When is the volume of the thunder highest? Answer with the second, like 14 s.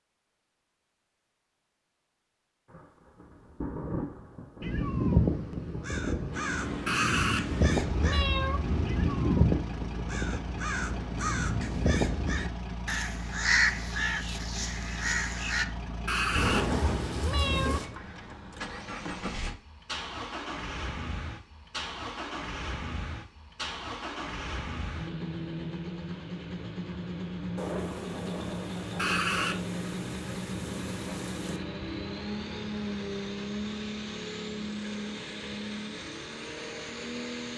17 s.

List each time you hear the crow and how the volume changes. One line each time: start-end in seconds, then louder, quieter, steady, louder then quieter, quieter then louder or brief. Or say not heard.
4.6-15.7 steady.